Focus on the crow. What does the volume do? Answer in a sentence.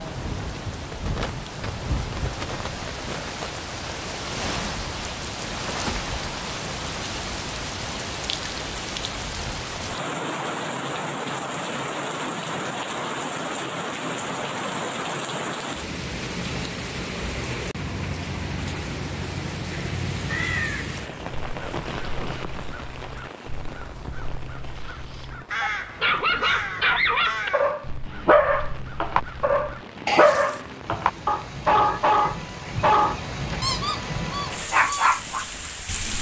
The volume of the crow goes up.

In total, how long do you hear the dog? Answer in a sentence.
The dog can be heard for 10 seconds in total.